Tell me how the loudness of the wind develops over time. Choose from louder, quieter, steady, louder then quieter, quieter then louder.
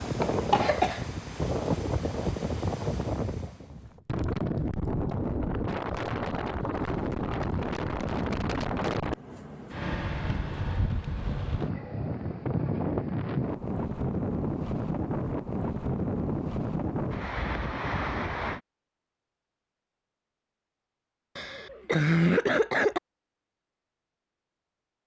steady.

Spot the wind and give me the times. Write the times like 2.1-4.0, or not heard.
0.0-18.6.